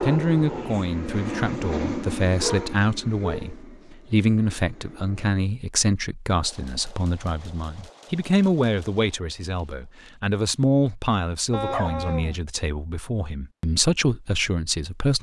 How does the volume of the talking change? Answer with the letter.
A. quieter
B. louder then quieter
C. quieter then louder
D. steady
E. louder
D.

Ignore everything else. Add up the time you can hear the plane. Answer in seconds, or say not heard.
5 s.